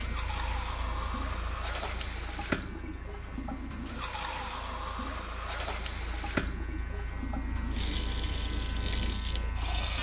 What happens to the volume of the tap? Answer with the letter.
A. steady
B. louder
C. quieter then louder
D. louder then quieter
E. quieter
A.